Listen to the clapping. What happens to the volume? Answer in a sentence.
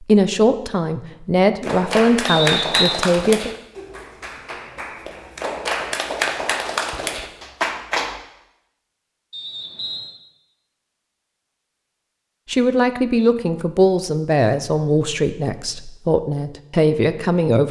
The loudness of the clapping goes down, then up.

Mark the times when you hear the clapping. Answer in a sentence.
The clapping can be heard from 1.6 to 8.2 s.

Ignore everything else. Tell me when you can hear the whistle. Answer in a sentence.
The whistle can be heard from 2.2 to 2.9 s and from 9.3 to 10.1 s.